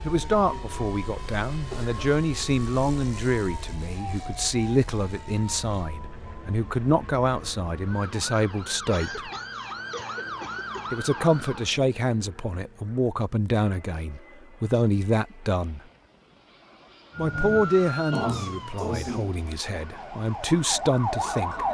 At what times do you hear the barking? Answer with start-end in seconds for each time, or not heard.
not heard.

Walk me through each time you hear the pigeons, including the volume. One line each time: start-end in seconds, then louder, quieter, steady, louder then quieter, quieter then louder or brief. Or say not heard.
not heard.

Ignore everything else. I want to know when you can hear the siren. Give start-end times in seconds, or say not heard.
0.0-11.7, 17.1-21.6.